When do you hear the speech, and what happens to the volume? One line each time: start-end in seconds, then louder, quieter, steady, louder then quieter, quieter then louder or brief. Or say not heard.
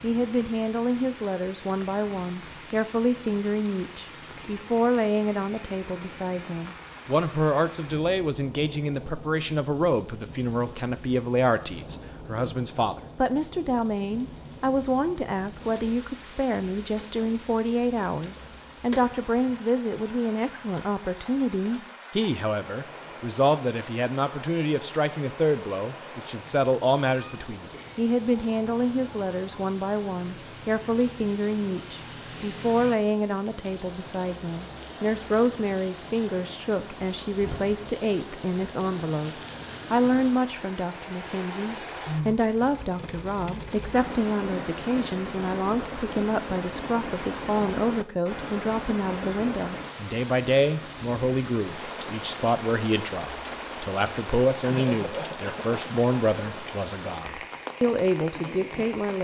0.0-59.1 steady.